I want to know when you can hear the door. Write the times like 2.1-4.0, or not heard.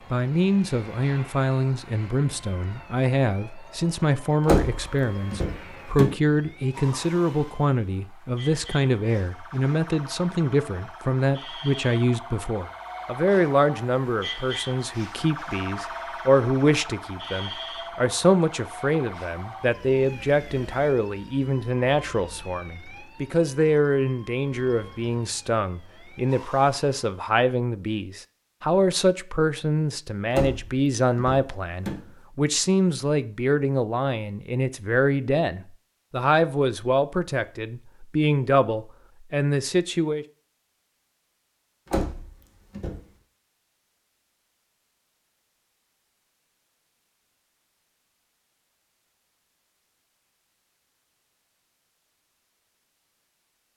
4.5-6.2, 30.3-32.1, 41.9-43.0.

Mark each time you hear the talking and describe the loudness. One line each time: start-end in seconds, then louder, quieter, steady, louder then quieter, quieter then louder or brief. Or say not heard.
0.1-40.2 steady.